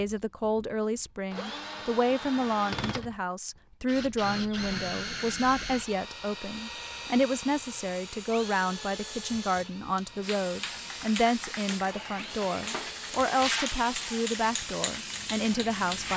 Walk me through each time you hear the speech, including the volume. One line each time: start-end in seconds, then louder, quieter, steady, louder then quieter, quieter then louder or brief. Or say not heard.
0.0-16.1 steady.